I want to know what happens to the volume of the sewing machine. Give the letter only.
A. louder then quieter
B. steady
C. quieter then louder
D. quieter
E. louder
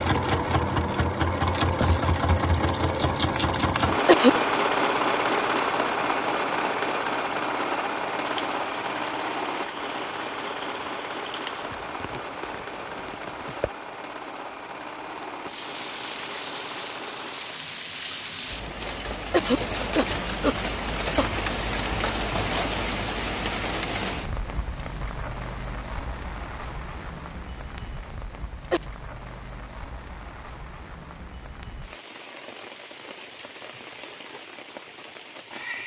D.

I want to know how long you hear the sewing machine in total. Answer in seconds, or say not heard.
18 s.